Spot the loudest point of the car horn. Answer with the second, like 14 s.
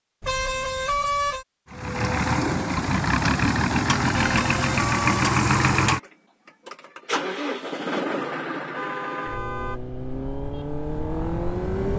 1 s.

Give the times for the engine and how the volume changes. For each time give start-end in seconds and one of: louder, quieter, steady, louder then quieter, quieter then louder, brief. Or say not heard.
1.7-11.9 quieter.